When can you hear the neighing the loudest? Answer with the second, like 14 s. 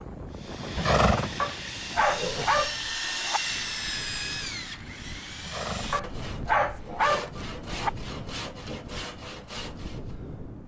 1 s.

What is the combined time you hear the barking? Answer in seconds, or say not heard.
4 s.